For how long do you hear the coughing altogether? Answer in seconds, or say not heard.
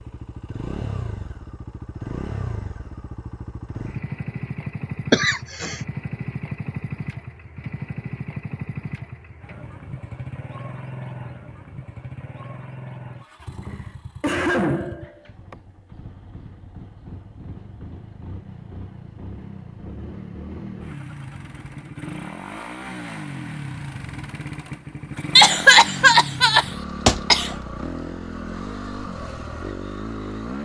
5 s.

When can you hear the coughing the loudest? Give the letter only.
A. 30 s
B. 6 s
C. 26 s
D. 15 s
C.